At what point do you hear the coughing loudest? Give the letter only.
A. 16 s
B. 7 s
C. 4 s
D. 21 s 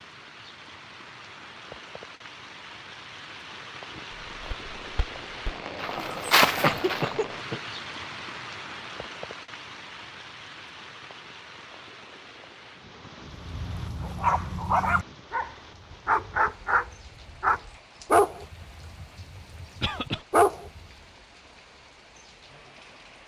B.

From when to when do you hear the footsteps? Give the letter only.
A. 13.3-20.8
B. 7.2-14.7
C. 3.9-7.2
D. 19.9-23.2
C.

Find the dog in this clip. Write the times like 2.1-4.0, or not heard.
13.3-20.8.